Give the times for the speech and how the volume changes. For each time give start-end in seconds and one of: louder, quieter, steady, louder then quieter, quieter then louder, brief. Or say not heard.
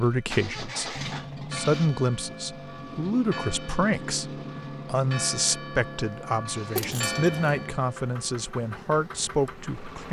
0.0-10.0 steady.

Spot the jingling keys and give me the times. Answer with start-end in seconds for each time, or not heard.
6.8-7.7.